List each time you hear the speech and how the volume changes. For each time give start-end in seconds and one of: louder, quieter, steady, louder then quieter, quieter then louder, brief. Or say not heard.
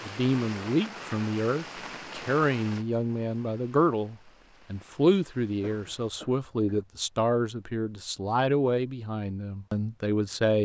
0.1-10.6 steady.